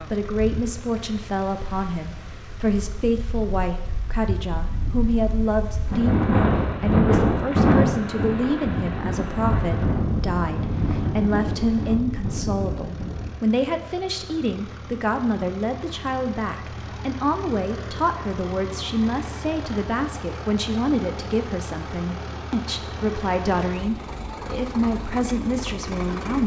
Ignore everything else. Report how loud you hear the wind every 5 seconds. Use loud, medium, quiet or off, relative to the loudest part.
quiet, loud, medium, off, off, off.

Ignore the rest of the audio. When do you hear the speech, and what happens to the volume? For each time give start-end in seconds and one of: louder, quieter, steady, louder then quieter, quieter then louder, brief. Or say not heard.
0.0-26.4 steady.